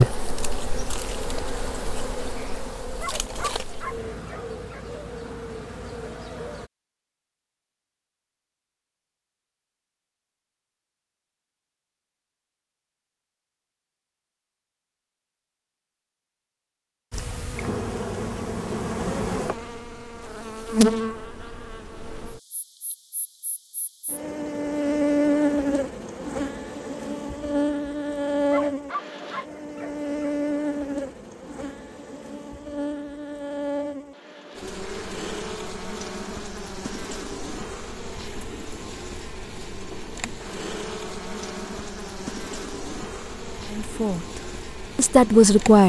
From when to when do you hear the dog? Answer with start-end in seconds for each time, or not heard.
3.0-5.0, 28.5-30.1.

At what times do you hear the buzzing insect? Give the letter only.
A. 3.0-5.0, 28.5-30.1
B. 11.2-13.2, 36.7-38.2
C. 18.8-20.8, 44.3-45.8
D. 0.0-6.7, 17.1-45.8
D.